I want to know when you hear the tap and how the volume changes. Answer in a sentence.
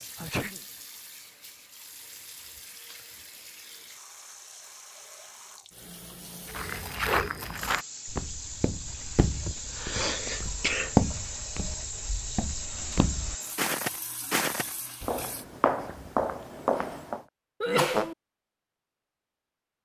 The tap can be heard from 0.0 to 15.4 s, getting louder.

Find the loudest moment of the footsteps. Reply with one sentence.
The loudest moment of the footsteps is at 11 seconds.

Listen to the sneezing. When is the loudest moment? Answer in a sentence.
The volume of the sneezing peaks at 18 seconds.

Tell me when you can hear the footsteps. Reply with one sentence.
You can hear the footsteps from 6.5 to 17.2 s.